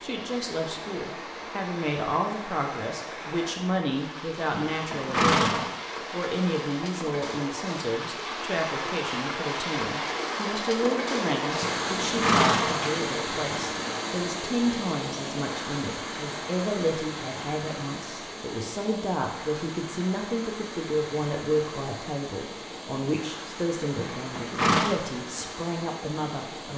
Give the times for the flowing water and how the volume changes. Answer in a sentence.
You can hear the flowing water from 0.0 to 26.7 s, getting louder then quieter.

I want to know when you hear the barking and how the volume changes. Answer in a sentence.
The barking can't be heard in this clip.